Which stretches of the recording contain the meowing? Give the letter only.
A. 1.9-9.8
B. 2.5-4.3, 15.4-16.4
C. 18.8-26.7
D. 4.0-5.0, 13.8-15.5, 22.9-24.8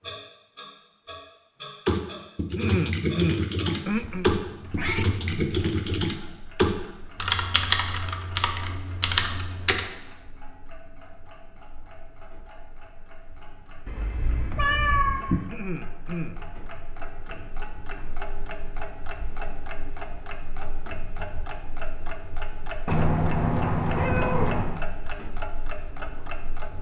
D.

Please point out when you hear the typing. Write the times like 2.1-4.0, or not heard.
1.9-9.8.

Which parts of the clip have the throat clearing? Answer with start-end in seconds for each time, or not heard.
2.5-4.3, 15.4-16.4.